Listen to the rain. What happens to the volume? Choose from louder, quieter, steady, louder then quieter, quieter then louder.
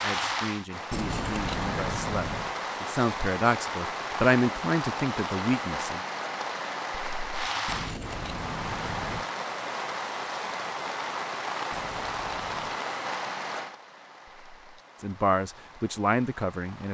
quieter.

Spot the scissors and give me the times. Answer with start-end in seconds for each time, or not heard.
0.9-2.5, 7.7-9.2, 11.7-12.8.